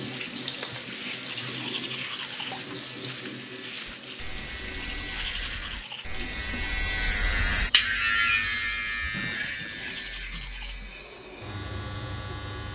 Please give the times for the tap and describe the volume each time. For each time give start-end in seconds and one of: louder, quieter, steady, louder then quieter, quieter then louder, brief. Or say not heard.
0.0-12.6 quieter.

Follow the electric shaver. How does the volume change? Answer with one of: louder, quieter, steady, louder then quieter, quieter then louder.
louder then quieter.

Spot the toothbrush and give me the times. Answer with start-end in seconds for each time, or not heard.
1.2-2.5, 5.0-6.0, 9.7-10.8.